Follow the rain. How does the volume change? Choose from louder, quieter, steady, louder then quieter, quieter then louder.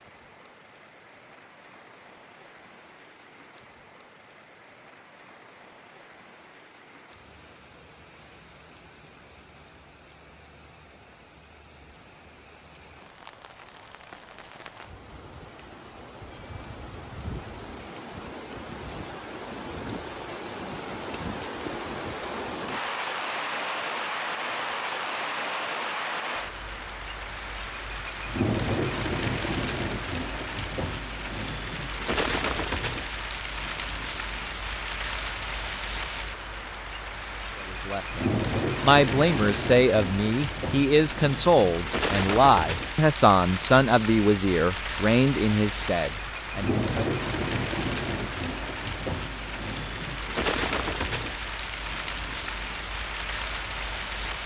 louder.